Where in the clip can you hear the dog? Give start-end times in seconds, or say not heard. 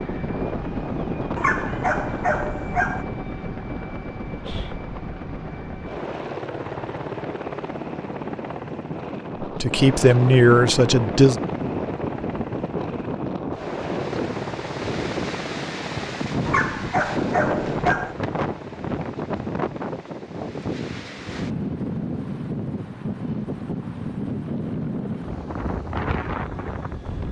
1.4-3.0, 16.4-18.1.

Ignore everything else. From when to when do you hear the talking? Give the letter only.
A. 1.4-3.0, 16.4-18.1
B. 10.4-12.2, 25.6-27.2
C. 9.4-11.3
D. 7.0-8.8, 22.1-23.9
C.